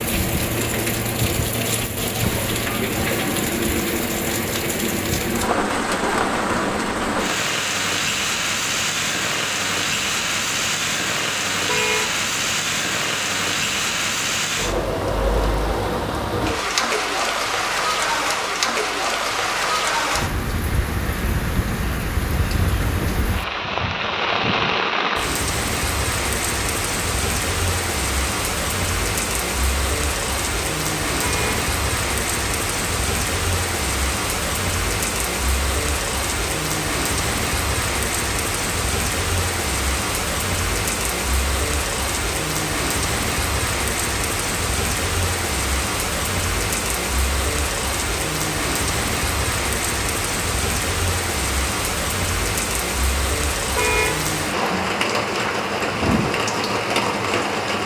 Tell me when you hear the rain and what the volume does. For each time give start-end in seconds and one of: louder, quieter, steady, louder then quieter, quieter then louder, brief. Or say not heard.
0.0-57.8 steady.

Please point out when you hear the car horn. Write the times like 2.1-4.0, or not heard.
11.7-12.2, 31.2-31.6, 53.8-54.2.